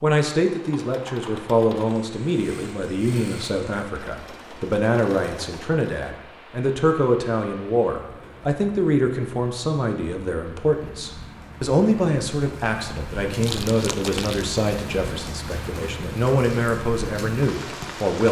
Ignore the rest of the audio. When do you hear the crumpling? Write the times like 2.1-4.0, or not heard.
13.4-14.5.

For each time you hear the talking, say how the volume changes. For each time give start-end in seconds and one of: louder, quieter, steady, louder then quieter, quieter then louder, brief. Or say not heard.
0.0-18.2 steady.